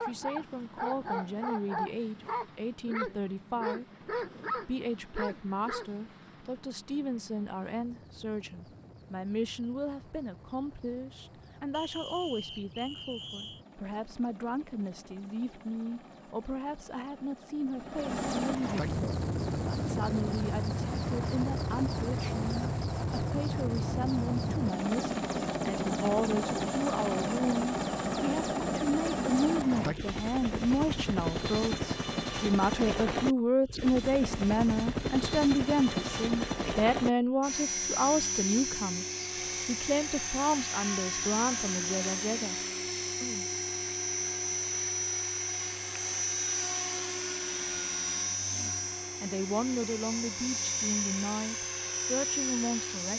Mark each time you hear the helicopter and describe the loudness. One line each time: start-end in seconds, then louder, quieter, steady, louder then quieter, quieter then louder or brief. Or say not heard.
0.0-53.1 louder.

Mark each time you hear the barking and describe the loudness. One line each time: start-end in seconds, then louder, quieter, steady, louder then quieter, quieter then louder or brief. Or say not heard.
0.0-5.9 steady.